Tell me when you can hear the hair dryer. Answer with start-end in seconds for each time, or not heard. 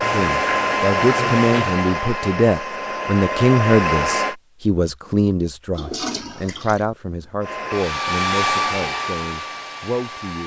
0.0-4.3, 7.4-10.4.